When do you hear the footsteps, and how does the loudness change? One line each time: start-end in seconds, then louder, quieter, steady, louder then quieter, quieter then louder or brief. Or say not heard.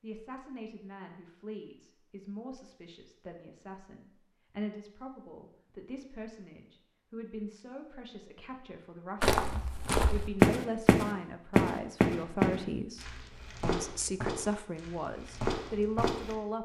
9.2-16.4 quieter.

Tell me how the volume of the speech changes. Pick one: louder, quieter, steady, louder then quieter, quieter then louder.
louder.